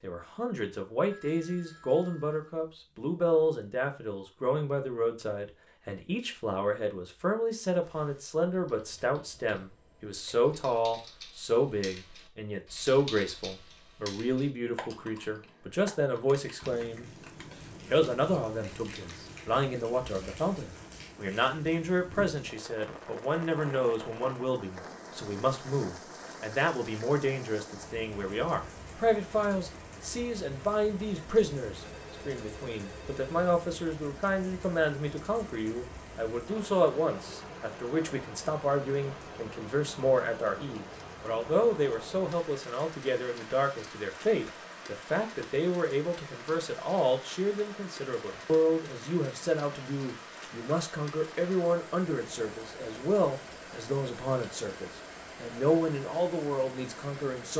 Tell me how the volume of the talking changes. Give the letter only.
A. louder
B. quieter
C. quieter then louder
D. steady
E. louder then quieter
D.